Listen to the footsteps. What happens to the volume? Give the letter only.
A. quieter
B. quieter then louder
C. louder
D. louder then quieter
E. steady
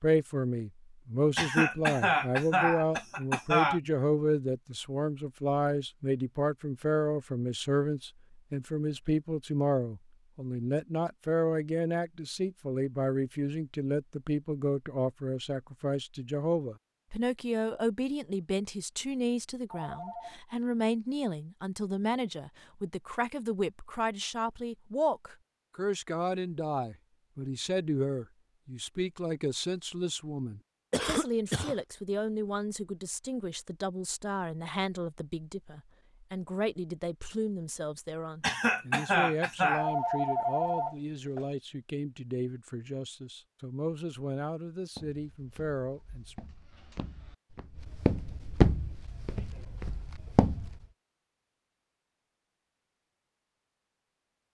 D.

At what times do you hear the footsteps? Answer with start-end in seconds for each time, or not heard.
45.0-50.8.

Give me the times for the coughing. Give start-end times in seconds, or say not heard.
1.4-3.8, 30.9-31.8, 38.4-39.9.